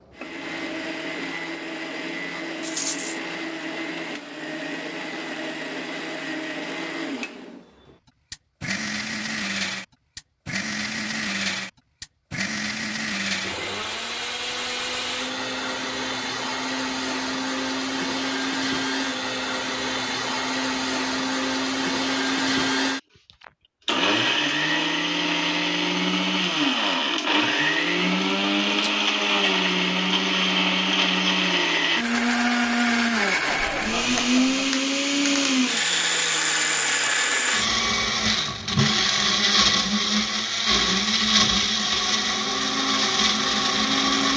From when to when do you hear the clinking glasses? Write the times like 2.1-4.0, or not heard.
not heard.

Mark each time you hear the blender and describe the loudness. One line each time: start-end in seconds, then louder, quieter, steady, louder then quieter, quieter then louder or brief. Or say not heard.
0.0-44.3 louder.